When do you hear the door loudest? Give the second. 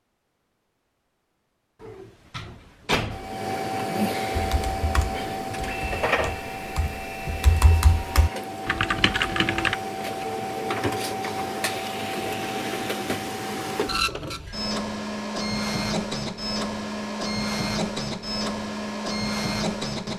3 s.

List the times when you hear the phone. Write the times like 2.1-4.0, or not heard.
not heard.